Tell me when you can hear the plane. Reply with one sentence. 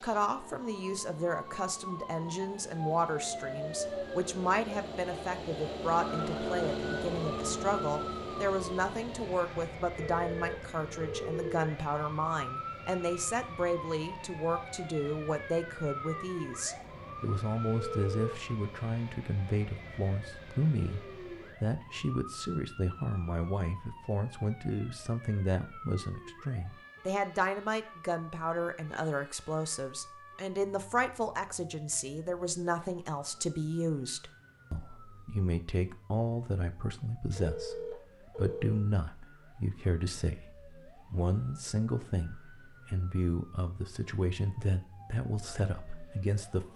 You can hear the plane from 0.0 to 21.6 s.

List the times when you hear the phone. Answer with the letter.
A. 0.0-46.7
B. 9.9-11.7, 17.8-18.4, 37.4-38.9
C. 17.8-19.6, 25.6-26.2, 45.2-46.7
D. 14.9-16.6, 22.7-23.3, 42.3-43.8
B.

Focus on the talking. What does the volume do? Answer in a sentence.
The loudness of the talking stays about the same.